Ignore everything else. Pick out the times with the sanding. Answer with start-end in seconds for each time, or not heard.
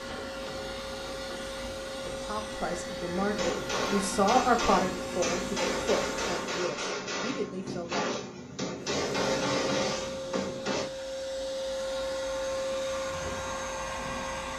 not heard.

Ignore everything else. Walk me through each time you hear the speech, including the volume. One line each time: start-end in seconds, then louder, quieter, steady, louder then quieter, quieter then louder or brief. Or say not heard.
2.0-8.2 louder then quieter.